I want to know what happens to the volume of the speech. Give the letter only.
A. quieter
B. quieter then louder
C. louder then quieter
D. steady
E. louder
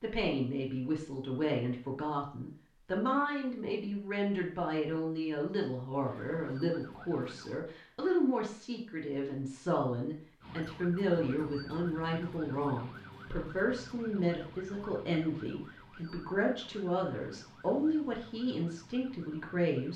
D.